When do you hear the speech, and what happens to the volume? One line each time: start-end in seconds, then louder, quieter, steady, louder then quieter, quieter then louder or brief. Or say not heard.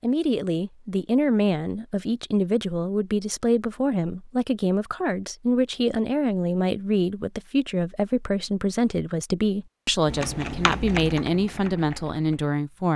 0.0-12.9 steady.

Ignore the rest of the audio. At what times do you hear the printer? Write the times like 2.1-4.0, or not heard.
not heard.